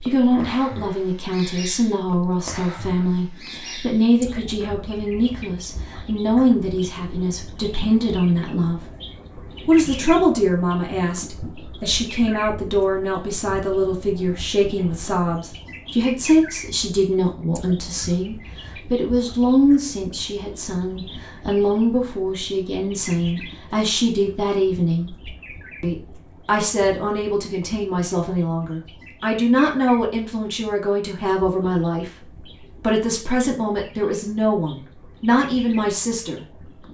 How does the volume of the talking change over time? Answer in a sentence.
The volume of the talking stays about the same.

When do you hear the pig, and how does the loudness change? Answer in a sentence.
The pig can't be heard in this clip.